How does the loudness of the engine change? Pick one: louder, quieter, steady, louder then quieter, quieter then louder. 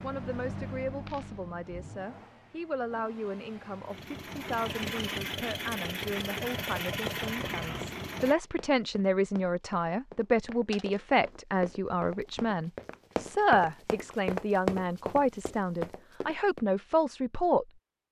quieter then louder.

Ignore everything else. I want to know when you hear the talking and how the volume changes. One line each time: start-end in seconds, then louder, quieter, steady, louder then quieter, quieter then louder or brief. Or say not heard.
0.0-18.0 louder.